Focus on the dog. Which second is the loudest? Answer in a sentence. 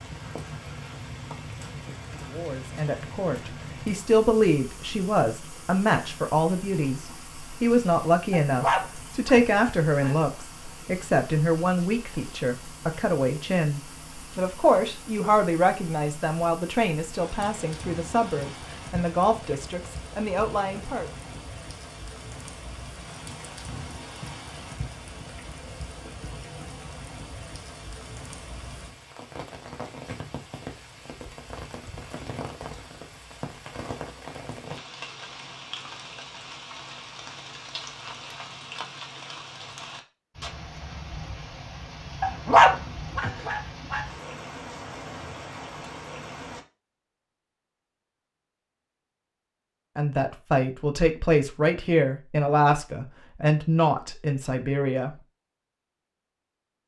The loudest moment of the dog is at 43 seconds.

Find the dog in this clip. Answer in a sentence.
You can hear the dog from 8.3 to 10.2 s and from 42.2 to 44.0 s.